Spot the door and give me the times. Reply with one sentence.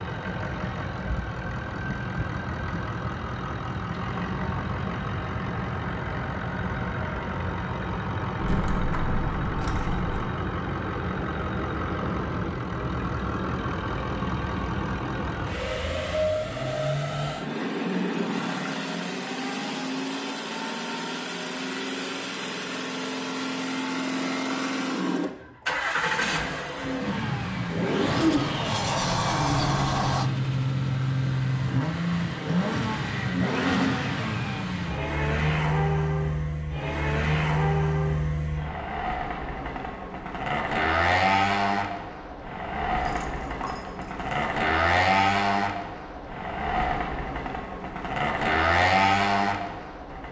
The door can be heard from 28.4 to 30.3 s.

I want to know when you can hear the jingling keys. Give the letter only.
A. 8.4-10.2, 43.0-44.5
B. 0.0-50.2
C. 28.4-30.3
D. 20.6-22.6
A.